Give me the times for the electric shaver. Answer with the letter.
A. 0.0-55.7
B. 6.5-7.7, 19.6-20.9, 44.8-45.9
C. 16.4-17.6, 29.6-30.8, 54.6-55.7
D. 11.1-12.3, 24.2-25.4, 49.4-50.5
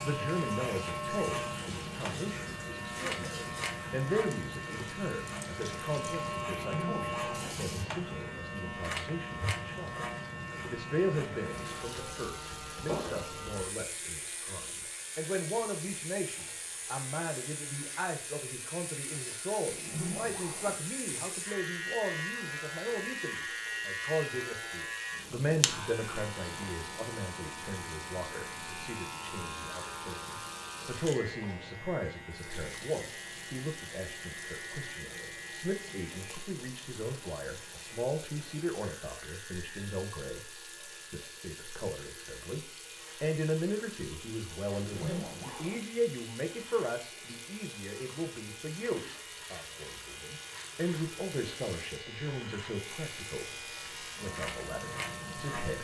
A.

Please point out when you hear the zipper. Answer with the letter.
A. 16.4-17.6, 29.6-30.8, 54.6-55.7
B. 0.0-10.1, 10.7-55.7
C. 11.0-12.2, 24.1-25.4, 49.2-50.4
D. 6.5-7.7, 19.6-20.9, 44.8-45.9
D.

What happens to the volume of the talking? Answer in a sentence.
The volume of the talking stays about the same.